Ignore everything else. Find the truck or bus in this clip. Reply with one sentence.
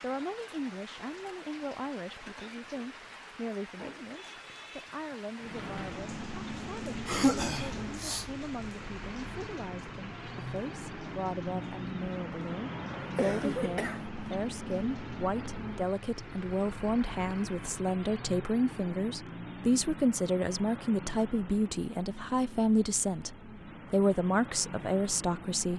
The truck or bus can be heard from 5.4 to 25.7 s.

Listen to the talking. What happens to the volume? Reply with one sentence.
The loudness of the talking goes up.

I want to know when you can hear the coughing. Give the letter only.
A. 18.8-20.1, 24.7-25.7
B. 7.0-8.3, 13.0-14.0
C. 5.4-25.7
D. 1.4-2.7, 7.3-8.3
B.